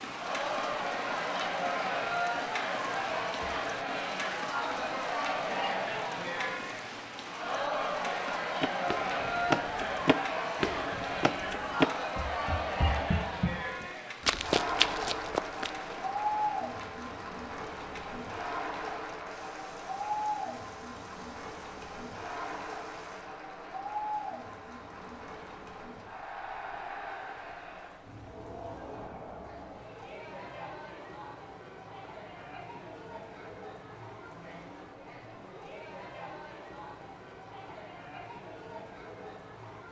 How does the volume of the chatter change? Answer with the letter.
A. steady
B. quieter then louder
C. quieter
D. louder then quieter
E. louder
C.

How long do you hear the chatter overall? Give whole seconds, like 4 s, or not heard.
40 s.